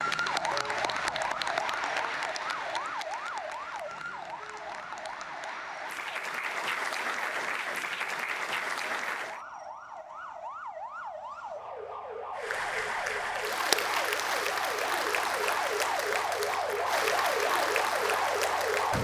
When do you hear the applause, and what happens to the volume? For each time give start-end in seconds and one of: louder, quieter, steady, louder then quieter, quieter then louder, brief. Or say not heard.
0.0-9.4 quieter then louder
12.3-18.9 steady.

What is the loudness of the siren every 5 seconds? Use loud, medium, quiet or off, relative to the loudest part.
medium, quiet, medium, loud.